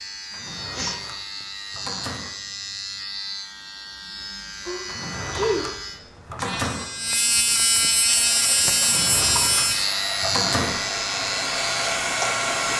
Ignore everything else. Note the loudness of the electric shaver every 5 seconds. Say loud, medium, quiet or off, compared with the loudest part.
medium, loud, loud.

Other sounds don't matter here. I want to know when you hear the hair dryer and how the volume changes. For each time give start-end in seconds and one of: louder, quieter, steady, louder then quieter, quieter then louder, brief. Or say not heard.
8.0-12.7 louder.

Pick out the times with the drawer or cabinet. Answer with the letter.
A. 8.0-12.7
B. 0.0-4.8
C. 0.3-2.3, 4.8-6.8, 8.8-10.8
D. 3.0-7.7
C.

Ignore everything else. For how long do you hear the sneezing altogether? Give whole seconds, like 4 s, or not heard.
2 s.